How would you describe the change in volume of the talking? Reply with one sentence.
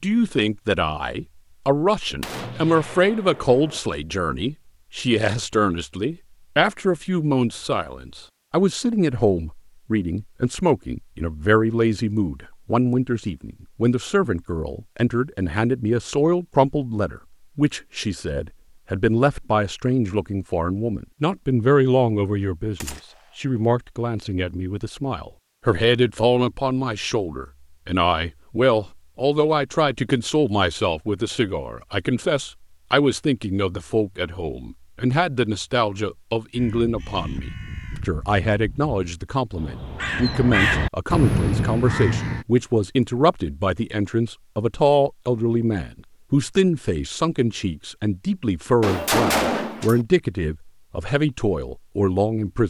The loudness of the talking stays about the same.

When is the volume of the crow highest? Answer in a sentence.
The loudest moment of the crow is at 41 seconds.